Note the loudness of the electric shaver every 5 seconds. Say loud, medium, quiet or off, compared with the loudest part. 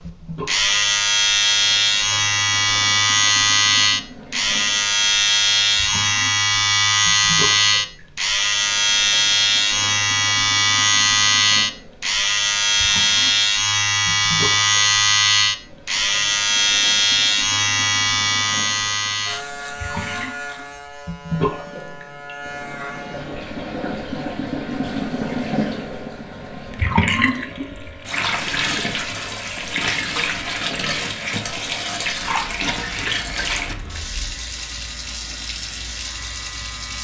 loud, loud, loud, loud, quiet, quiet, quiet, quiet.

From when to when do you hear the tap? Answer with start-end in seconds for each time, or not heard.
0.0-36.9.